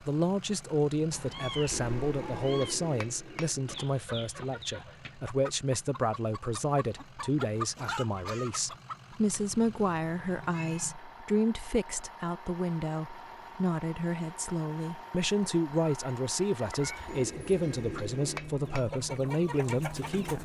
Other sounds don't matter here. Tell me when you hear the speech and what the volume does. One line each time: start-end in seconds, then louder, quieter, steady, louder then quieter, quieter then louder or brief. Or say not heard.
0.0-20.4 steady.